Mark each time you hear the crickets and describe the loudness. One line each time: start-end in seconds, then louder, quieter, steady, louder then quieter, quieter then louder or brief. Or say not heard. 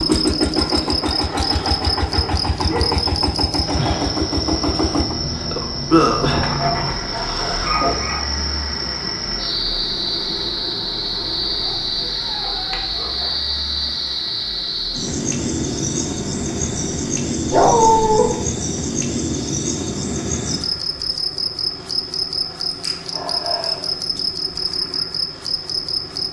0.0-26.2 steady.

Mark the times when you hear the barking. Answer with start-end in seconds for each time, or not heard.
0.6-3.0, 6.5-8.2, 11.6-13.3, 17.5-18.3, 22.7-24.0.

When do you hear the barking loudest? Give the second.
18 s.